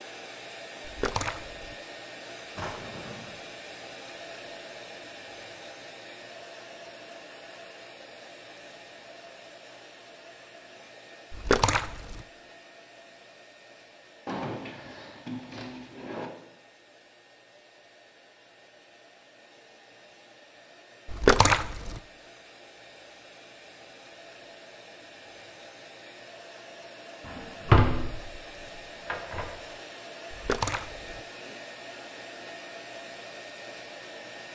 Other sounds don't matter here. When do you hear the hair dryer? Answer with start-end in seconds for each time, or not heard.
0.0-34.4.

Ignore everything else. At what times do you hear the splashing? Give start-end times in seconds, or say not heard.
0.8-1.8, 11.3-12.2, 21.1-22.0, 30.3-31.2.